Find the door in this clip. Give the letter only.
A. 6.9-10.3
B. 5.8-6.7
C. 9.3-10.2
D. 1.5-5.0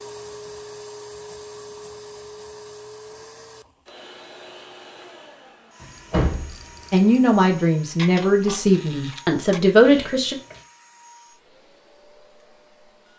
B.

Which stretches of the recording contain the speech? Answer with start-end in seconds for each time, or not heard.
6.9-10.3.